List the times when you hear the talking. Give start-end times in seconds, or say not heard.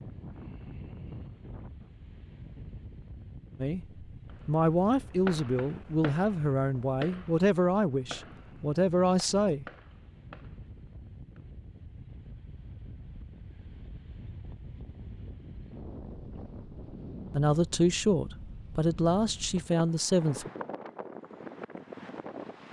3.6-9.7, 17.3-20.5.